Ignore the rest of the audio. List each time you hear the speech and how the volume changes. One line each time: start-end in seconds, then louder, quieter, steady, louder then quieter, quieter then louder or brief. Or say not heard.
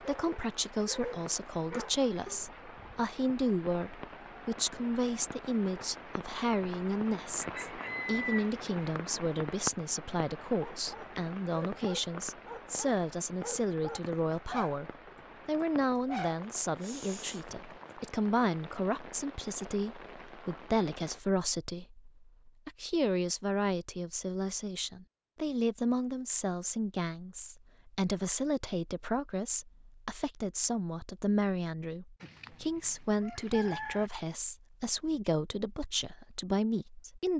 0.0-37.3 steady.